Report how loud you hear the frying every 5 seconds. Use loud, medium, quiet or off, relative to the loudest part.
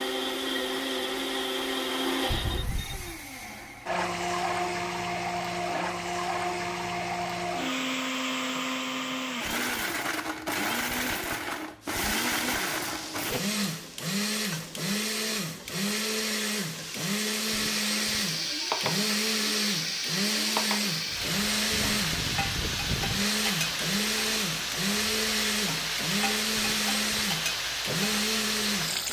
off, off, medium, loud, loud, loud.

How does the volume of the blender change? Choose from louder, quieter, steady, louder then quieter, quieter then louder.
steady.